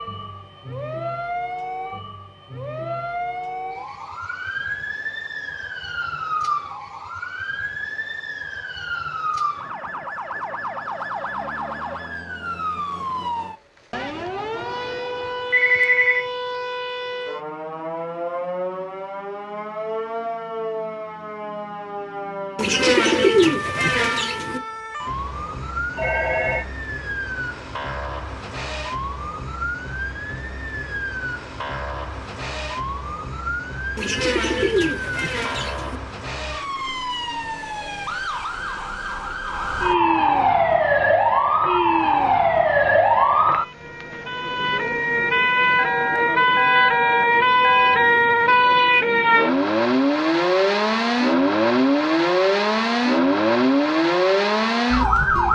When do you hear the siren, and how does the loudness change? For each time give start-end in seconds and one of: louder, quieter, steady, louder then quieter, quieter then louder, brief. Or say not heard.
0.0-55.5 louder.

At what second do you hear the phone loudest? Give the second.
16 s.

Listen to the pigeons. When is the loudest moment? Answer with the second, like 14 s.
23 s.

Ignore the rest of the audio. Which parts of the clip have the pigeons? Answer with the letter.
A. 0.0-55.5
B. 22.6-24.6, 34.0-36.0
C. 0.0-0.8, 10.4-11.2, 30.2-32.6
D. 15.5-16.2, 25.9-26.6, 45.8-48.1
B.